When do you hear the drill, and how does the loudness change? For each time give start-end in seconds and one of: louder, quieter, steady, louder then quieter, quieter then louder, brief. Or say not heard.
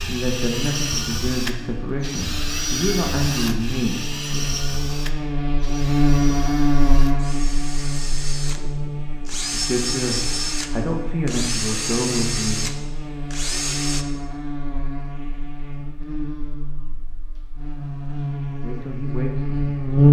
0.0-14.1 quieter then louder.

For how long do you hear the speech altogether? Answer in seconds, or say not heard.
9 s.